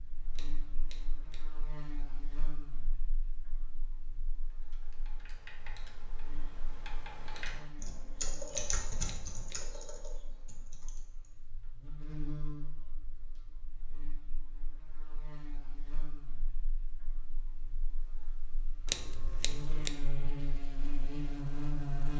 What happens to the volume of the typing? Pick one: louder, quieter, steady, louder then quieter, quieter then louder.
louder then quieter.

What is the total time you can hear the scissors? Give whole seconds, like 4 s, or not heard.
3 s.